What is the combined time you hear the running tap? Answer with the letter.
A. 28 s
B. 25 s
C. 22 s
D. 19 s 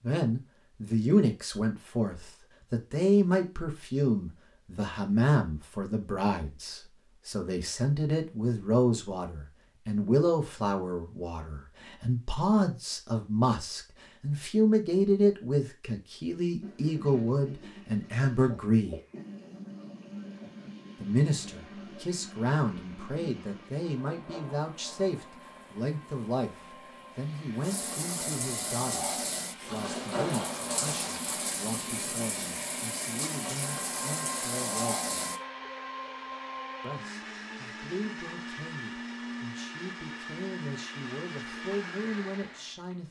D.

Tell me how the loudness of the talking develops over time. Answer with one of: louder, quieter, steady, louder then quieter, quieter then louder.
quieter.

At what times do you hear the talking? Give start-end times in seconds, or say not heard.
0.0-19.0, 21.0-35.1, 36.8-43.0.